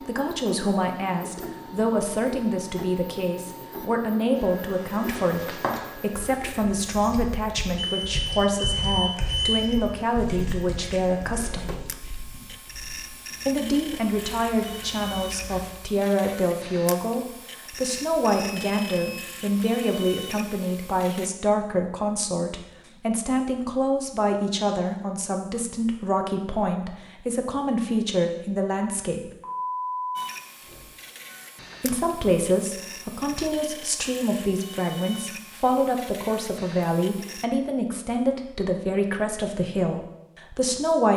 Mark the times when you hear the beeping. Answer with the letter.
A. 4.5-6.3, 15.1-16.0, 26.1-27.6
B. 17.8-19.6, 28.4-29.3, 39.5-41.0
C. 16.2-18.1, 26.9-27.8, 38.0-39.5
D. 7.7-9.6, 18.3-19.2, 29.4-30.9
D.